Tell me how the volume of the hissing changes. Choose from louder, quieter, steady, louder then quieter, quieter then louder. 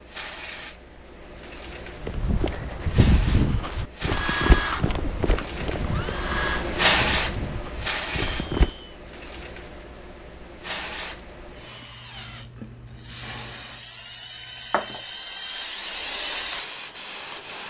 louder then quieter.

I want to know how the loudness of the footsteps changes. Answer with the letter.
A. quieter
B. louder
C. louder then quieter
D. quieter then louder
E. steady
A.